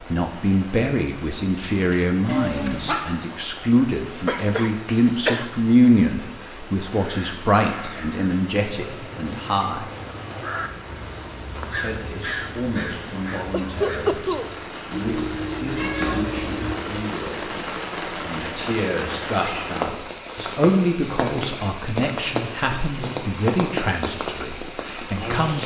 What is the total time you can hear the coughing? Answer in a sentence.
The coughing can be heard for 2 seconds in total.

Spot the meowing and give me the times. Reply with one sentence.
You can hear the meowing from 2.2 to 3.0 s and from 14.9 to 16.8 s.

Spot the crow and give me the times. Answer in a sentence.
The crow can be heard from 6.9 to 14.8 s.